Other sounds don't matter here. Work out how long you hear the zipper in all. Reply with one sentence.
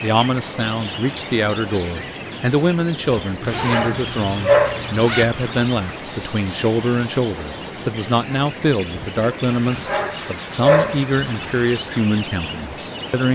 The zipper can be heard for 2 seconds in total.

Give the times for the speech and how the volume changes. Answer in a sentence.
The speech can be heard from 0.0 to 13.2 s, at a steady volume.